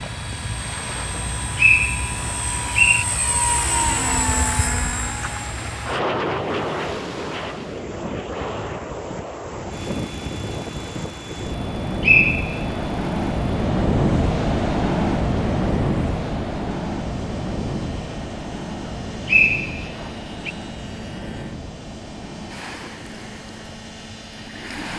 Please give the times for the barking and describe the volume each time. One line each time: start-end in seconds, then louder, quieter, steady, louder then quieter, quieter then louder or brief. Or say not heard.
not heard.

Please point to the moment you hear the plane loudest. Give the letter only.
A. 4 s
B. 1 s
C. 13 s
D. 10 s
A.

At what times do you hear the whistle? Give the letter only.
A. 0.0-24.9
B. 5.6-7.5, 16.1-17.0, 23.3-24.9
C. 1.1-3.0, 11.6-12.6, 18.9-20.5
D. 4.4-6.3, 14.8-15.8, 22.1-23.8
C.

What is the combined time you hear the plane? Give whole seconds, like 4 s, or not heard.
25 s.